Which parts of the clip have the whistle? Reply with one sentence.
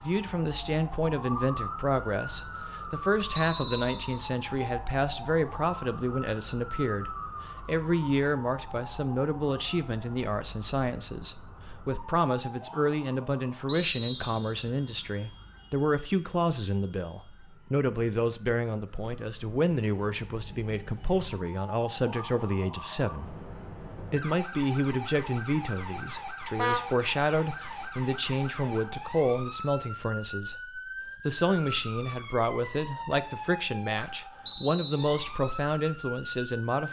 The whistle can be heard from 3.4 to 4.2 s, from 13.7 to 14.6 s and from 34.5 to 35.1 s.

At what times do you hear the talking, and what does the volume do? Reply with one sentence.
You can hear the talking from 0.0 to 36.8 s, at a steady volume.